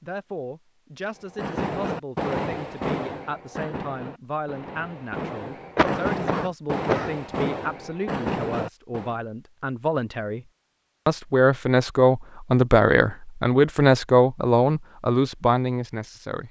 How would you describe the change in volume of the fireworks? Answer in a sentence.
The volume of the fireworks goes down, then up.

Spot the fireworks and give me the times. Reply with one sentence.
You can hear the fireworks from 1.3 to 9.2 s.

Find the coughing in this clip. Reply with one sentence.
The coughing can be heard from 5.8 to 7.2 s.